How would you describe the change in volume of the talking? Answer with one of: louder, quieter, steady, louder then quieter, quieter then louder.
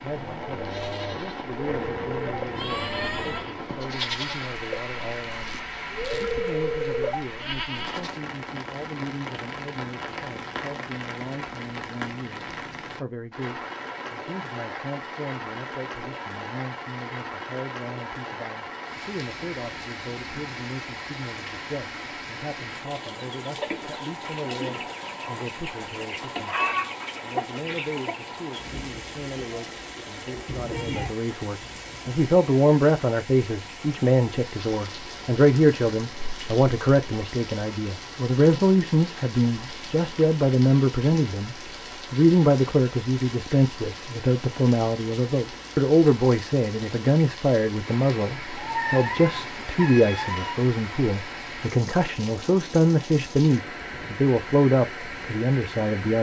louder.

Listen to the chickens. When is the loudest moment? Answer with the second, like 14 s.
27 s.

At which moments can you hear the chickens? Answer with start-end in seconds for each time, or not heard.
23.1-28.6.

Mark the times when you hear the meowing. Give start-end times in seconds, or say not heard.
1.6-3.5, 30.4-31.1, 48.5-50.5.